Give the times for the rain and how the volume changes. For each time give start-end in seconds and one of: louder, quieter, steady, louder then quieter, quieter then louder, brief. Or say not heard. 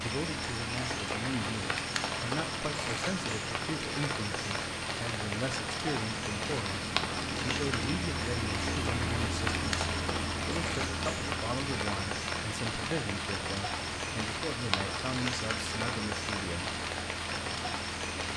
0.0-18.3 steady.